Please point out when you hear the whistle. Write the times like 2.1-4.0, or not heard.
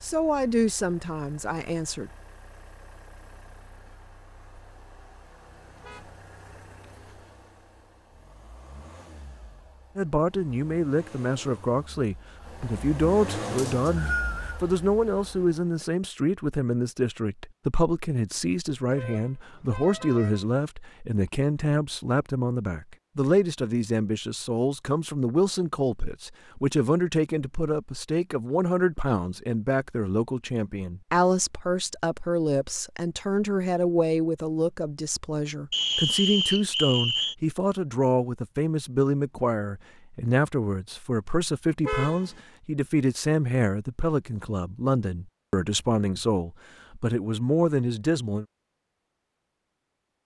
13.6-14.6, 35.7-37.4.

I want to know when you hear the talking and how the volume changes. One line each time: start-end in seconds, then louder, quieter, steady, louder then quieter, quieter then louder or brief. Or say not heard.
0.0-2.1 brief
9.9-48.5 steady.